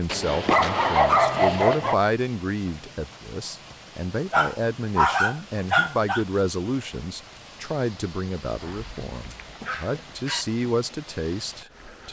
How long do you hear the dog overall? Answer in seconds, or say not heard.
6 s.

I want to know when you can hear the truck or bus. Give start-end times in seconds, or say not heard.
not heard.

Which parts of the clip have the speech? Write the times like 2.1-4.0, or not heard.
0.0-12.0.